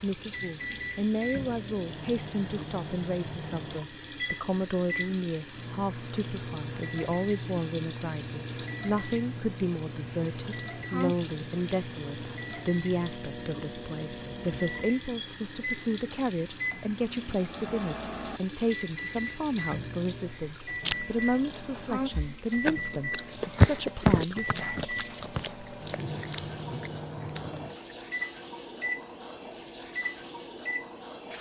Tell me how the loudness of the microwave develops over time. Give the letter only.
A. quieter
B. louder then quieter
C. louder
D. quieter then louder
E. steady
E.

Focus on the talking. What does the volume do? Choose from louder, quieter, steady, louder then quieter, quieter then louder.
steady.